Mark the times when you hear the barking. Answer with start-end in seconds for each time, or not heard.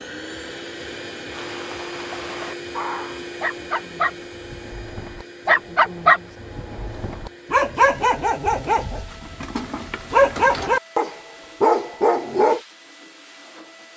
1.3-12.6.